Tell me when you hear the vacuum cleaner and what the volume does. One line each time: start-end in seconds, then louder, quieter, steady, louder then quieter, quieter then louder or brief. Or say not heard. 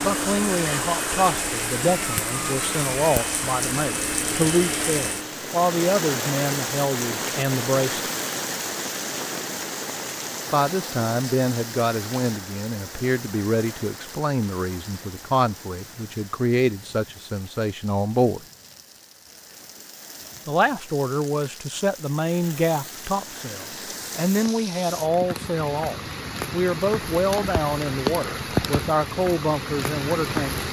0.0-5.5 steady.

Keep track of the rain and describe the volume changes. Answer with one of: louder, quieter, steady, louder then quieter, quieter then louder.
quieter then louder.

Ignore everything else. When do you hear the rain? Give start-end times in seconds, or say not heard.
0.0-30.6.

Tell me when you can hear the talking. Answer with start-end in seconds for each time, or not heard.
0.0-8.1, 10.5-18.4, 20.4-30.6.